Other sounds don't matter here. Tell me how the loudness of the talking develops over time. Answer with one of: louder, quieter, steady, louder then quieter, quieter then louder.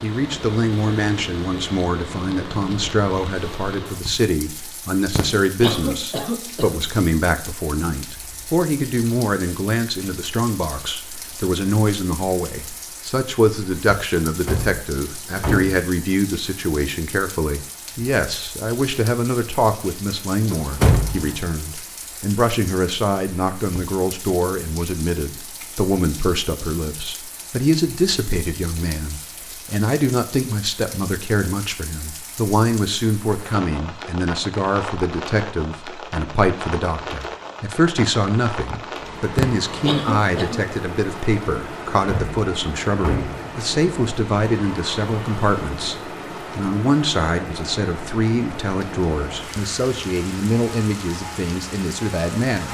steady.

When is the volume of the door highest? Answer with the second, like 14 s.
21 s.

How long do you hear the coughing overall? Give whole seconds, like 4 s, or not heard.
3 s.